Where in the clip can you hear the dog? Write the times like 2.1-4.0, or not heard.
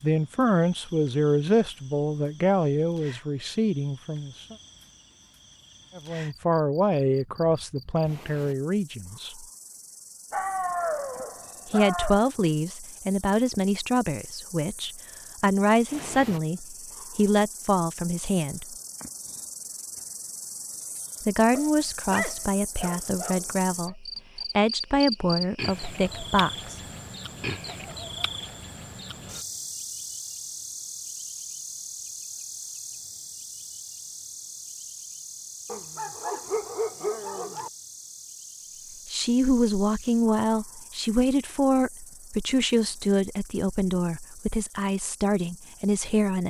10.3-12.3, 21.5-23.9, 35.6-37.7.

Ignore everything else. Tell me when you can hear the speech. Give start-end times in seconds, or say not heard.
0.0-4.5, 6.0-9.4, 11.7-18.8, 21.2-26.8, 39.0-46.4.